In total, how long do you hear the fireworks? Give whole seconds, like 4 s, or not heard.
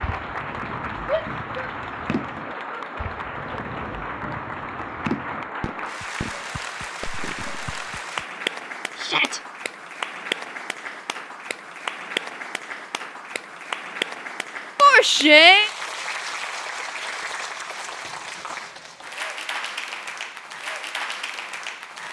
8 s.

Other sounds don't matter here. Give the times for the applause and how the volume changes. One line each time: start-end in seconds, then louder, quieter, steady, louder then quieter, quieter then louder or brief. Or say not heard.
0.0-22.0 steady.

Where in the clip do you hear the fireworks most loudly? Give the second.
5 s.